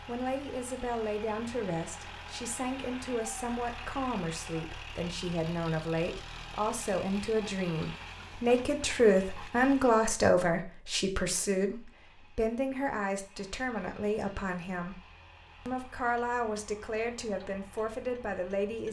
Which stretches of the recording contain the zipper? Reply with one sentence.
You can't hear the zipper here.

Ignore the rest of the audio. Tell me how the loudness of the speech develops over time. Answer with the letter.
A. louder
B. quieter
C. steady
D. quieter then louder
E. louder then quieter
E.